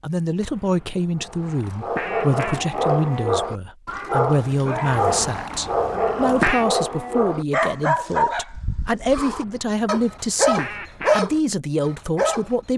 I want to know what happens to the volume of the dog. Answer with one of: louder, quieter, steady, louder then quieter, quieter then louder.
steady.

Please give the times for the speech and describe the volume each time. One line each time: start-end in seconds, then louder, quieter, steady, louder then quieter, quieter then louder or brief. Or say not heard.
0.0-12.7 steady.